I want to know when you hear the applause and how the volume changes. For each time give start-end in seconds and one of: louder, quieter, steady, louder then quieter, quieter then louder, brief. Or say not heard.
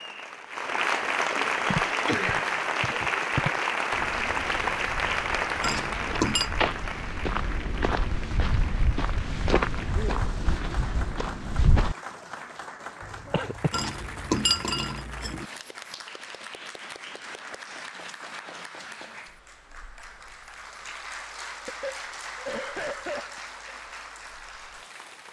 0.0-25.2 quieter.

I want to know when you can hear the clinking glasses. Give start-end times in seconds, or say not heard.
5.6-6.5, 13.7-15.4.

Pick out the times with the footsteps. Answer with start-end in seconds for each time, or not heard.
1.6-11.9.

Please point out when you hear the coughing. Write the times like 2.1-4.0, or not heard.
2.0-3.0, 13.3-13.8, 21.6-23.4.